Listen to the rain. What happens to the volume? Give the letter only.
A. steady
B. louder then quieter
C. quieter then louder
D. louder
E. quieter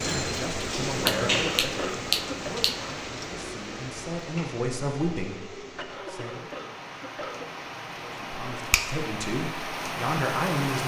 C.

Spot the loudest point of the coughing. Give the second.
1 s.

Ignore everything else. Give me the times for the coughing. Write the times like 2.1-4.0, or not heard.
1.0-2.5, 5.8-7.5.